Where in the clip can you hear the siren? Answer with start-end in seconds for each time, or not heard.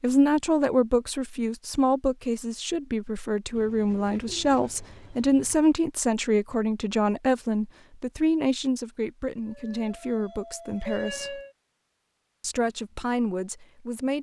9.4-11.6.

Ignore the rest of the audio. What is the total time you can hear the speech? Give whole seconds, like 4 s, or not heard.
13 s.